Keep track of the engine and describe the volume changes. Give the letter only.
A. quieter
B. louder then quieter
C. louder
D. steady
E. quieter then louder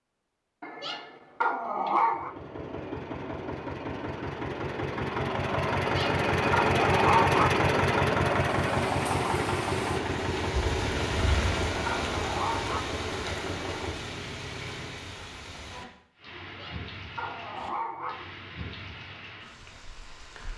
B.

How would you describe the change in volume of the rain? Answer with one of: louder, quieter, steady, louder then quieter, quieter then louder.
quieter.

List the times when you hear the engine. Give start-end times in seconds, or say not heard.
2.1-15.2.